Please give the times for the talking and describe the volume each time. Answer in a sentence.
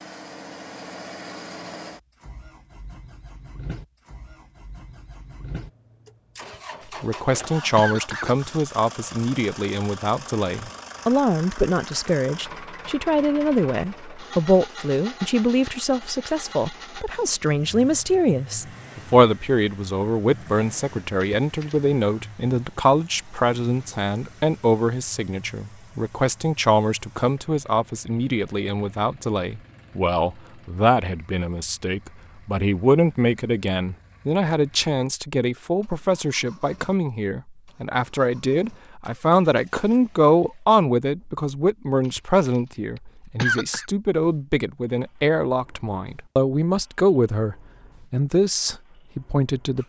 You can hear the talking from 7.0 to 49.8 s, at a steady volume.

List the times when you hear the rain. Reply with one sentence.
The rain can't be heard in this clip.